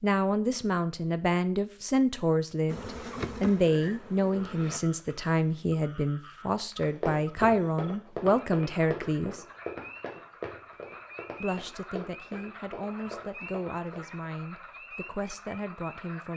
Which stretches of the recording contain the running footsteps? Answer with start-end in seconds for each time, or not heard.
6.8-14.0.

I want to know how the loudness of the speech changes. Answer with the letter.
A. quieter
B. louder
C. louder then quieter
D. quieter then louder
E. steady
A.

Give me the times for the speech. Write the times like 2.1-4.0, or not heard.
0.0-9.4, 11.4-16.3.